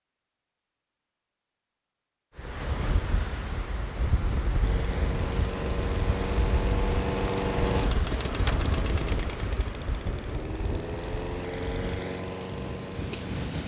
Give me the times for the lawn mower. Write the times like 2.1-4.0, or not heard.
4.6-13.6.